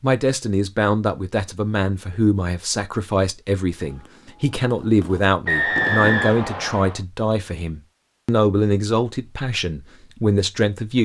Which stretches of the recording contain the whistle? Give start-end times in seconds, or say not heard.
5.5-7.0.